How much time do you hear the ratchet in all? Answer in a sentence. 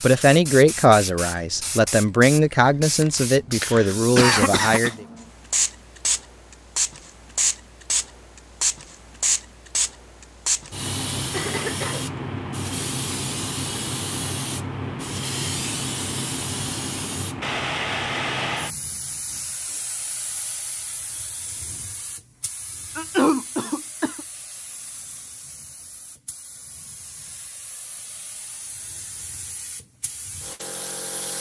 You can't hear the ratchet here.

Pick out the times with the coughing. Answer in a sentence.
The coughing can be heard from 3.6 to 5.0 s, from 11.3 to 12.1 s and from 22.9 to 24.2 s.